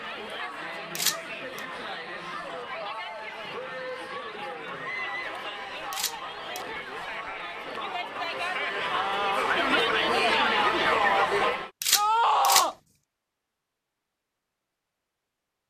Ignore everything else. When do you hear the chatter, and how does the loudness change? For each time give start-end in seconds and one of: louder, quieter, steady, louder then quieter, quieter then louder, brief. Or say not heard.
0.0-11.7 louder.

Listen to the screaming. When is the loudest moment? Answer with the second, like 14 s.
12 s.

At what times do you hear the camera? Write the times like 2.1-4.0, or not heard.
0.9-1.6, 5.9-6.6, 11.8-12.7.